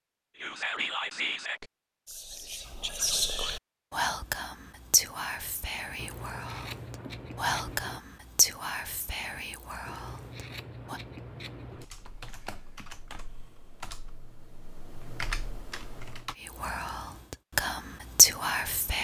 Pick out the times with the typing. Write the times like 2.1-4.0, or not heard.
11.8-16.4.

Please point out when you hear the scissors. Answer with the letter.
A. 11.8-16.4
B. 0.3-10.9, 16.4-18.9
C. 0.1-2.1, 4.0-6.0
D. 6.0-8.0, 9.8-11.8
D.